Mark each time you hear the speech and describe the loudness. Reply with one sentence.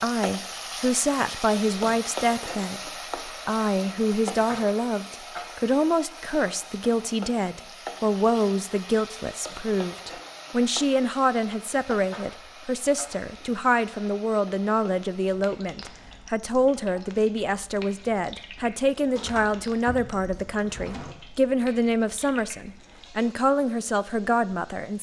The speech can be heard from 0.0 to 24.9 s, at a steady volume.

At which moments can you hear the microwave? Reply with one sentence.
The microwave can't be heard in this clip.